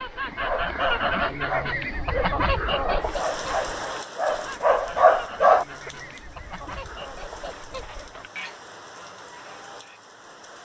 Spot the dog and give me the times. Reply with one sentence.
You can hear the dog from 0.4 to 5.9 s.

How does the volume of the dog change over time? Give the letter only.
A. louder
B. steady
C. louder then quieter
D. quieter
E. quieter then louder
A.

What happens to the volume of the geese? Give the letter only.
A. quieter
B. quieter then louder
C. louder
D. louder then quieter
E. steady
A.